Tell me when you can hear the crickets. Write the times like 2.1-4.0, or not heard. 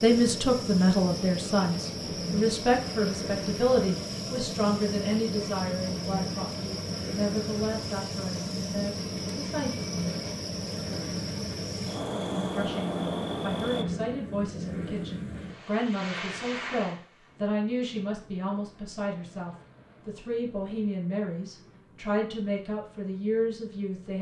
0.0-13.8.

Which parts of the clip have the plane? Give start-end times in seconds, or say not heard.
0.0-24.1.